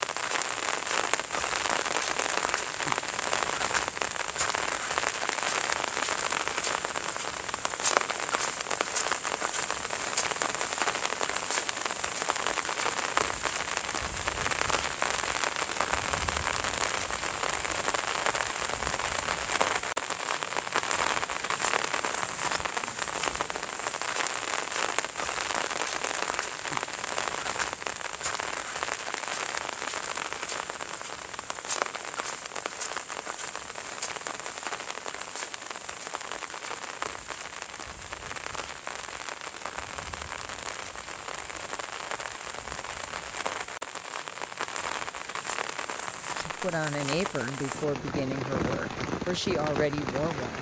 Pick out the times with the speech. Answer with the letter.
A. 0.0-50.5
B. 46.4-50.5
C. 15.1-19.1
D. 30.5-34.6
B.